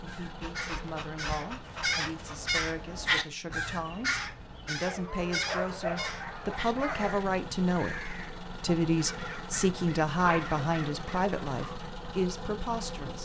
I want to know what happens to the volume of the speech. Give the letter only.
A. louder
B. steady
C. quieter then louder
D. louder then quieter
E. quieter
A.